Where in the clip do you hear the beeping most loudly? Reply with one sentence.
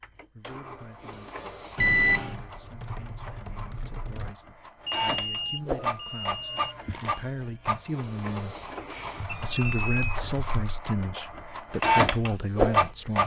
The loudest moment of the beeping is at 2 seconds.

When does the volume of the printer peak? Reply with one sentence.
The volume of the printer peaks at 12 seconds.